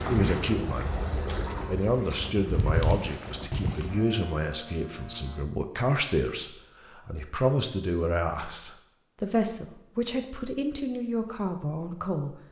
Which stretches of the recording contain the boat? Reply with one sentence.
The boat can be heard from 0.0 to 5.5 s.